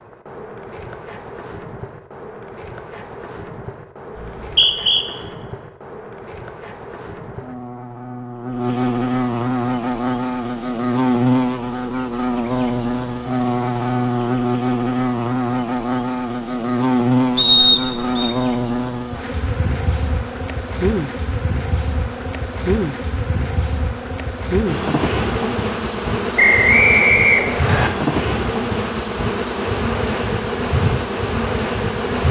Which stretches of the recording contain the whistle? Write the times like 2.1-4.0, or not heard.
4.2-5.0, 17.4-18.3, 26.4-27.9.